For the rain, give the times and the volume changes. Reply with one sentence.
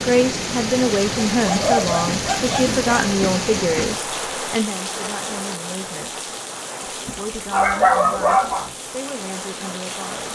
The rain can be heard from 0.0 to 10.2 s, getting quieter.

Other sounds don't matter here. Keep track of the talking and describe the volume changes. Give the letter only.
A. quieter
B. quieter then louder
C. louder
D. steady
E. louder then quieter
A.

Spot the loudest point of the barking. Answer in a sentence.
The loudest moment of the barking is at 8 seconds.